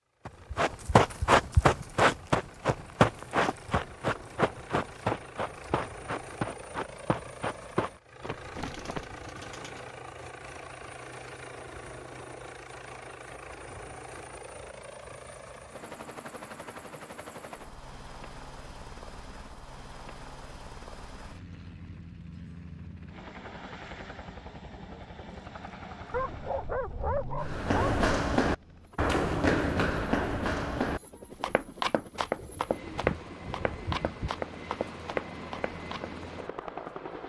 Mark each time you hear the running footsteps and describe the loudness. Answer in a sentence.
You can hear the running footsteps from 0.2 to 9.1 s, getting quieter; and from 27.4 to 36.1 s, getting quieter.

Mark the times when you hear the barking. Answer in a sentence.
The barking can be heard from 26.1 to 28.1 s.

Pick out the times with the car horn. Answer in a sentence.
You can't hear the car horn here.